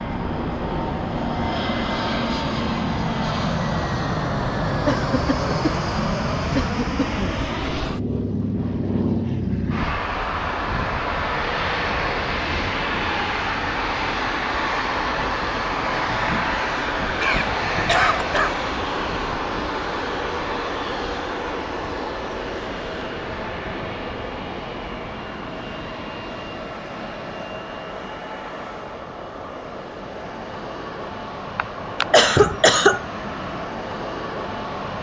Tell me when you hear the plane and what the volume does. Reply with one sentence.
The plane can be heard from 0.0 to 34.9 s, getting quieter.